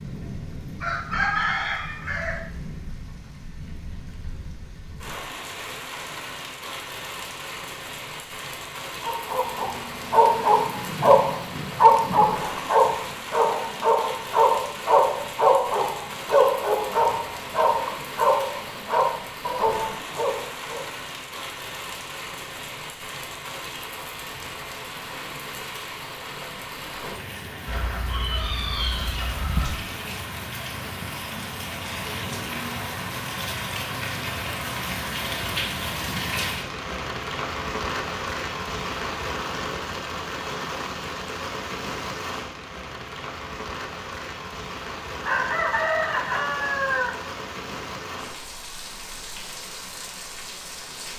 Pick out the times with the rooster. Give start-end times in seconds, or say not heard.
0.8-2.5, 27.6-29.7, 45.2-47.1.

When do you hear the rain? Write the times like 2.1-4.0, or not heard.
0.0-51.1.